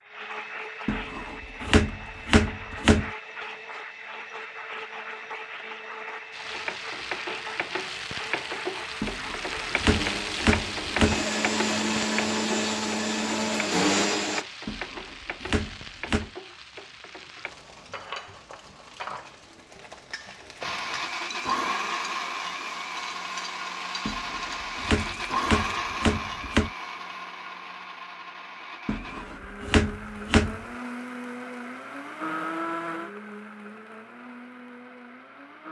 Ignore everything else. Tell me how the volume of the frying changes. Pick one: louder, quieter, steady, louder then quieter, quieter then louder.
quieter.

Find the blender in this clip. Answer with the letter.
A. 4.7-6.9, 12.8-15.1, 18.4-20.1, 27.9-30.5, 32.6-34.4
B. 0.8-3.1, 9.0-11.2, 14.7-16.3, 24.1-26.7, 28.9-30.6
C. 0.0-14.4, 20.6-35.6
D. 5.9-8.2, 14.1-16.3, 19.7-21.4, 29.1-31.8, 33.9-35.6
C.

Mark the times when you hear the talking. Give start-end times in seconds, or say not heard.
not heard.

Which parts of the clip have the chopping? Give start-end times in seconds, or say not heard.
0.8-3.1, 9.0-11.2, 14.7-16.3, 24.1-26.7, 28.9-30.6.